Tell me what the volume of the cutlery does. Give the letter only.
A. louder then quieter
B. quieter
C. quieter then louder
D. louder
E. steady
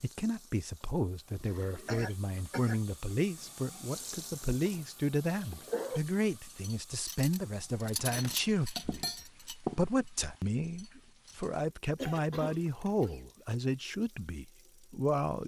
A.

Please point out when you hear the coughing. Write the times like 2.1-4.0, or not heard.
1.9-2.8, 5.3-6.0, 11.9-13.2.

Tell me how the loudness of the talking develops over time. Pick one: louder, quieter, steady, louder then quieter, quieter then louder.
steady.